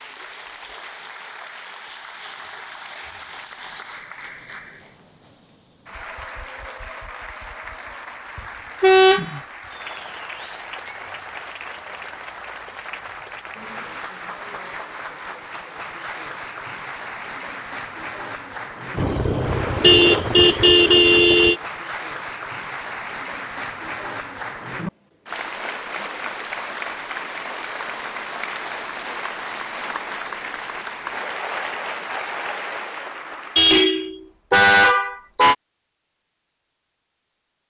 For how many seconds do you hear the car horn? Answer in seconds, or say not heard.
5 s.